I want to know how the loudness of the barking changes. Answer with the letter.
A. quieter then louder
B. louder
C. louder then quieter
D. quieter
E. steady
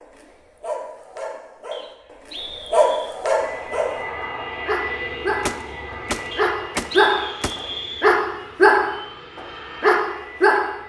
B.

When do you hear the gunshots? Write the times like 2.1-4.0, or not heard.
5.4-7.5.